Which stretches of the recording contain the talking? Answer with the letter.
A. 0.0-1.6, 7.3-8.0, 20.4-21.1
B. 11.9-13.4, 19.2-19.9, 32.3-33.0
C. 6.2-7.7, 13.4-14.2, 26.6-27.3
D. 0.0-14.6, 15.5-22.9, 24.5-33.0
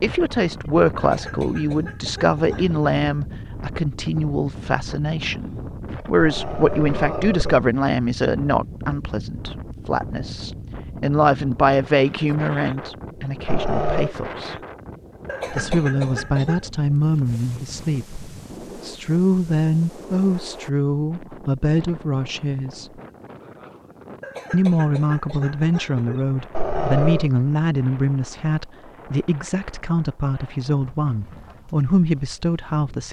D.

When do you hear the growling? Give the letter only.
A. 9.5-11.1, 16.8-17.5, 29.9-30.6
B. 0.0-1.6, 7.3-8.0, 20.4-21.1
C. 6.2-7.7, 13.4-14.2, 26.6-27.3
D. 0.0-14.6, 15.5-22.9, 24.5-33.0
C.